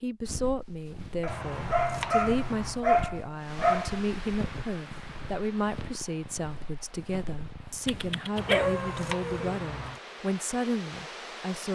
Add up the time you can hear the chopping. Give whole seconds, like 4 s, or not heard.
3 s.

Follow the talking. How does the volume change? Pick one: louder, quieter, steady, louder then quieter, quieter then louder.
steady.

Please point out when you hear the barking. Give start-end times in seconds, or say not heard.
1.2-4.0, 7.8-9.6.